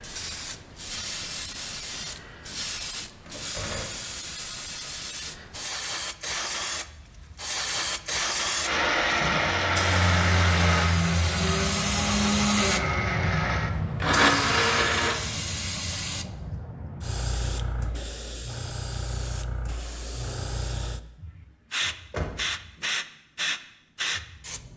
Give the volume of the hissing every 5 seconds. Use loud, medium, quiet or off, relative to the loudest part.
medium, loud, loud, medium, loud.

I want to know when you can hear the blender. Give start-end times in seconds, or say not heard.
8.6-15.2.